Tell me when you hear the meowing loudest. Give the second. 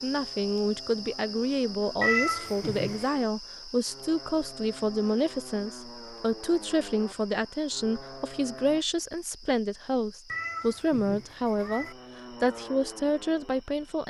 2 s.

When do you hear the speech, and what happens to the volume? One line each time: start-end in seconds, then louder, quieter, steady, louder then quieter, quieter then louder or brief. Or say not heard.
0.0-14.0 steady.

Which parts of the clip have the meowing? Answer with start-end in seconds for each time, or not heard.
2.0-3.0, 10.2-11.9.